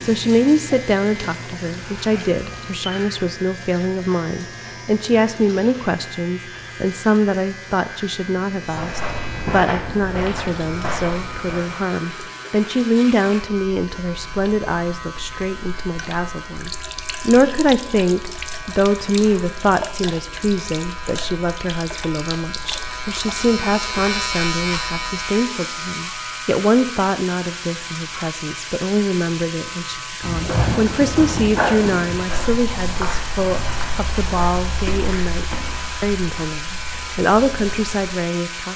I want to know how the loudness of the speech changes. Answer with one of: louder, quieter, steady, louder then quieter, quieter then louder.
steady.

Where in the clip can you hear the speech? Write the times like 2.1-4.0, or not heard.
0.0-38.7.